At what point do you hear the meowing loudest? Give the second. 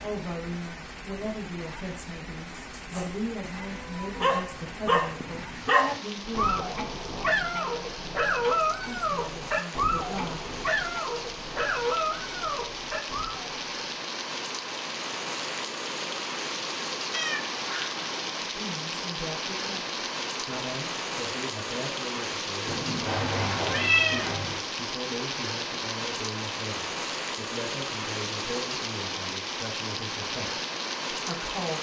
24 s.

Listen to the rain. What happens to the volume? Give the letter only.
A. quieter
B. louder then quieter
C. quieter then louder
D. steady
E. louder
E.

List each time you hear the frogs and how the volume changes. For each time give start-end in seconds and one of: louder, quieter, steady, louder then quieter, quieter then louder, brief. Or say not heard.
not heard.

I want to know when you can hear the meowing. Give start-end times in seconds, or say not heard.
2.5-4.2, 17.1-18.0, 22.6-24.6.